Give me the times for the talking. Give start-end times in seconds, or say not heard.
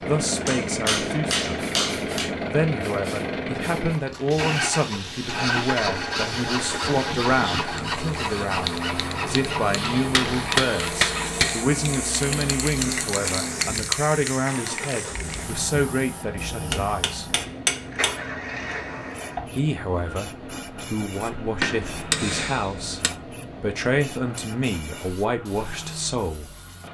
0.1-1.5, 2.5-17.2, 19.4-26.5.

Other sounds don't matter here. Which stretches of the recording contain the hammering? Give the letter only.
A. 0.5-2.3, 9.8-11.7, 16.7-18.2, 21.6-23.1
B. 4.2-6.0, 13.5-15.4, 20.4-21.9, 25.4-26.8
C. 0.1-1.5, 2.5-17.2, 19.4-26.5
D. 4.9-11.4
A.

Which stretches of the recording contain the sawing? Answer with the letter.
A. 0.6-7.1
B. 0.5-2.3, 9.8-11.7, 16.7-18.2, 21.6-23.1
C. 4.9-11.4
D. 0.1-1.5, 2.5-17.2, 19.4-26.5
C.